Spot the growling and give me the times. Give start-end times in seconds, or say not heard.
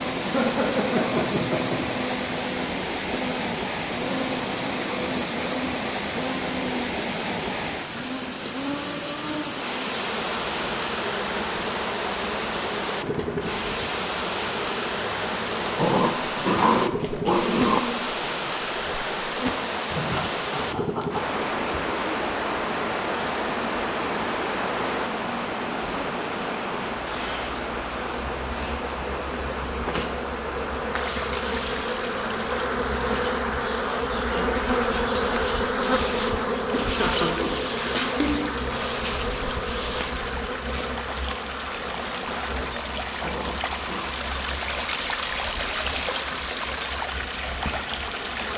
15.8-17.8, 43.2-44.1.